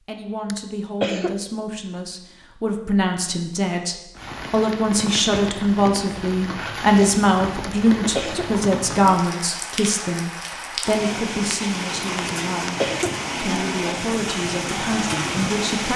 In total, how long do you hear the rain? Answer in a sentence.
You can hear the rain for 12 seconds altogether.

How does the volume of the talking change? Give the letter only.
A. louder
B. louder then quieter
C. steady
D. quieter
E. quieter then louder
B.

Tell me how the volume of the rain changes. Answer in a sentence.
The loudness of the rain goes up.